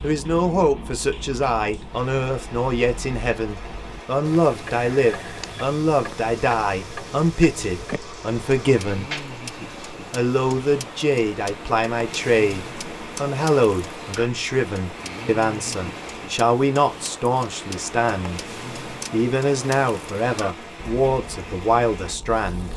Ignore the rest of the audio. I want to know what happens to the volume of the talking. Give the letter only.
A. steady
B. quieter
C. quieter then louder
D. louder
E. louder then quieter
A.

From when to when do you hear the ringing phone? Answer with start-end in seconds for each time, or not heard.
not heard.